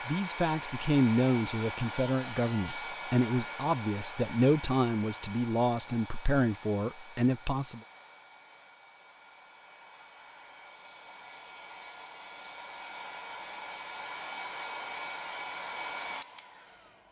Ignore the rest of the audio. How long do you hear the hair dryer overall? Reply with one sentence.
You can hear the hair dryer for 17 seconds altogether.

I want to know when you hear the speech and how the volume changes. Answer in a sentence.
You can hear the speech from 0.1 to 7.8 s, at a steady volume.